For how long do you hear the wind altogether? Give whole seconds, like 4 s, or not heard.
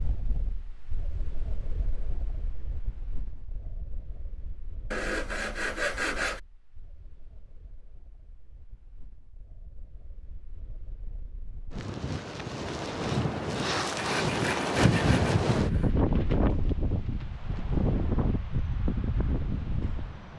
20 s.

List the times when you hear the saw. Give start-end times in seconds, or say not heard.
4.9-6.4, 13.9-15.9.